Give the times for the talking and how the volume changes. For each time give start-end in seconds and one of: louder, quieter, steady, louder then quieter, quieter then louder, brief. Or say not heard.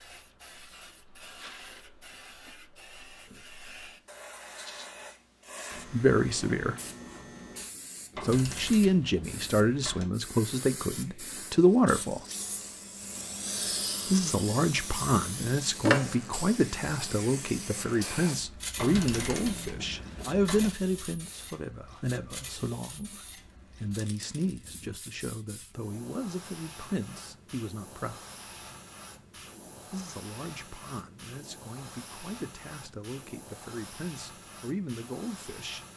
5.8-6.8 brief
8.2-12.2 quieter then louder
14.1-28.2 quieter
29.9-35.9 louder.